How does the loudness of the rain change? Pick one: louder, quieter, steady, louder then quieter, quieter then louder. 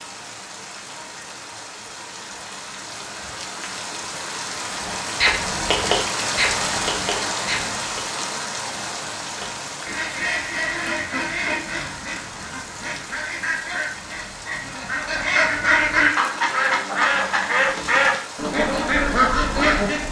louder then quieter.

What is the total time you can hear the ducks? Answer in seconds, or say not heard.
14 s.